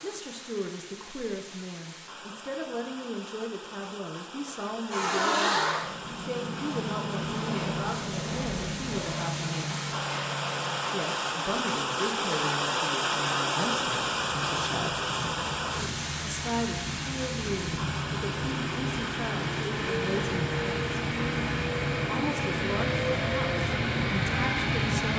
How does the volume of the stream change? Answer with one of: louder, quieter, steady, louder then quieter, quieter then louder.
louder then quieter.